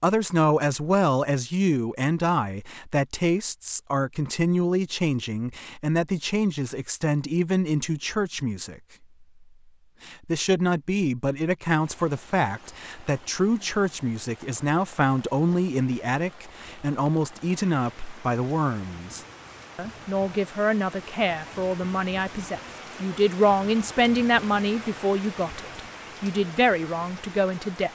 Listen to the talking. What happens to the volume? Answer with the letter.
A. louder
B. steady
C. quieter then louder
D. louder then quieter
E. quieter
B.